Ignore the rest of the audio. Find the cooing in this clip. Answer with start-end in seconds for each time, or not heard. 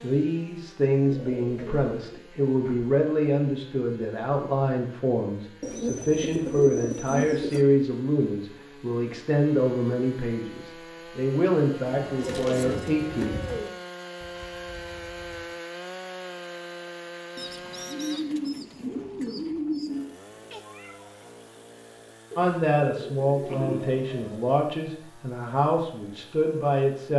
1.1-2.9, 5.6-7.7, 11.9-13.7, 17.4-20.1, 22.3-24.5.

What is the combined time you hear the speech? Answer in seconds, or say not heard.
18 s.